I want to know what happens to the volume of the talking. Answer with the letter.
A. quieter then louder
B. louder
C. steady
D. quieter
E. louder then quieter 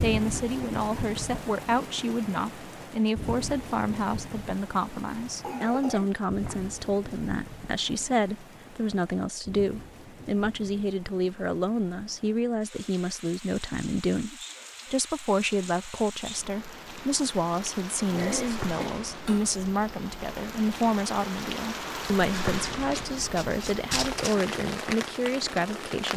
C.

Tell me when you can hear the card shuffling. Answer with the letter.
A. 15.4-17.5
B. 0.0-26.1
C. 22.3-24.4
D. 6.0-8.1
C.